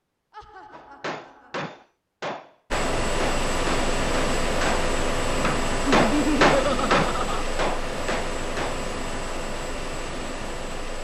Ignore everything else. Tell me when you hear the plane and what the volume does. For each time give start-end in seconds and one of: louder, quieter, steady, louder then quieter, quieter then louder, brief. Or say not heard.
2.7-11.0 quieter.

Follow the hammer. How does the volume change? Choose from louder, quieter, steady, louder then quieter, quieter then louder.
louder then quieter.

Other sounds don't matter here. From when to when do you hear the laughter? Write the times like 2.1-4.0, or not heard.
0.3-1.8, 5.8-7.5.